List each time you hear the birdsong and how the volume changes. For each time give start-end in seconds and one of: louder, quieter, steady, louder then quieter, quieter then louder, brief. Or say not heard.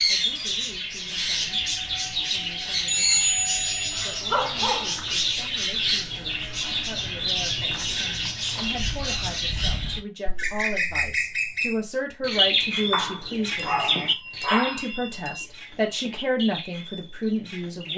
0.0-17.9 quieter.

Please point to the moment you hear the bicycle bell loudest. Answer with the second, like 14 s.
3 s.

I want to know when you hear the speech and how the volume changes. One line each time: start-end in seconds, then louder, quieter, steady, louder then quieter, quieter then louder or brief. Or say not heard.
0.1-1.6 brief
2.3-3.2 brief
4.0-17.9 louder.